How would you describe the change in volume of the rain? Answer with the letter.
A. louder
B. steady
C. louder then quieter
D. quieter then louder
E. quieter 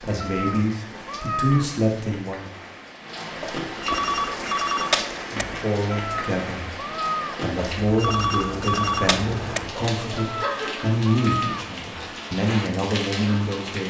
A.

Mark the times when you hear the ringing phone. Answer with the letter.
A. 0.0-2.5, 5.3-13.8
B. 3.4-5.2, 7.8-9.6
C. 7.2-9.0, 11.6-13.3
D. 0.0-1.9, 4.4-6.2
B.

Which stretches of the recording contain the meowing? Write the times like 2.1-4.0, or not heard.
0.1-1.8, 5.8-7.4, 10.2-11.8.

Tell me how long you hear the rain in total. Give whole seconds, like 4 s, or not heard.
14 s.